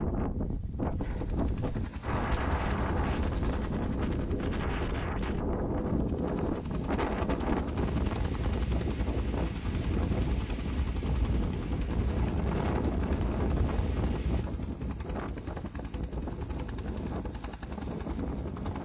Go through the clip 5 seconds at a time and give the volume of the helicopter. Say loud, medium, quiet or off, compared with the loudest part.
medium, medium, loud, loud.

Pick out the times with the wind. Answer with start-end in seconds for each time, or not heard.
0.0-14.4.